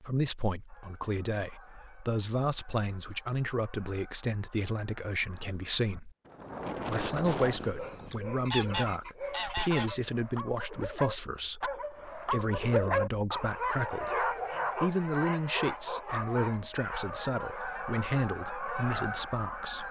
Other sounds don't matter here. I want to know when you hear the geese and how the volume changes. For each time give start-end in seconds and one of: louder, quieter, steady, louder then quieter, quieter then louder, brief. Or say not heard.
0.7-9.9 louder
16.9-19.8 brief.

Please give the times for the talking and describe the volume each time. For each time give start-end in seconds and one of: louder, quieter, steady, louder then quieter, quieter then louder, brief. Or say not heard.
0.0-6.1 steady
6.8-19.8 steady.